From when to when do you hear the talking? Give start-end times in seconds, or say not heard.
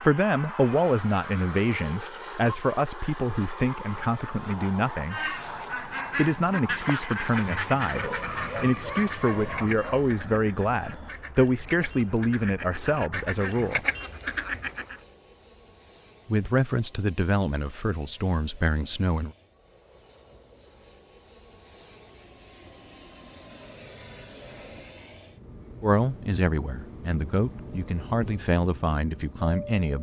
0.0-5.3, 6.2-13.8, 16.2-19.4, 25.8-29.9.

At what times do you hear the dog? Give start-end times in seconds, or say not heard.
8.0-10.1.